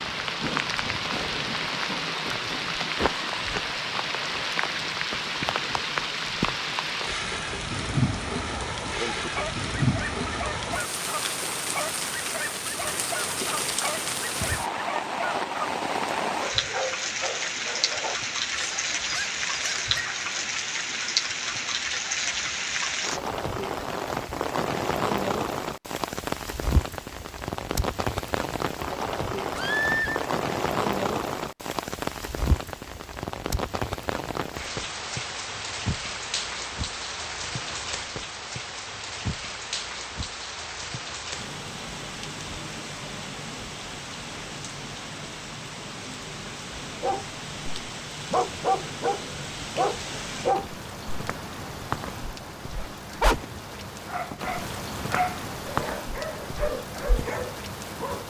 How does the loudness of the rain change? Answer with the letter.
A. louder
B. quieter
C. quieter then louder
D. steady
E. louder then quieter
B.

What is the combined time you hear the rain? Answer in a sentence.
The rain can be heard for 58 seconds in total.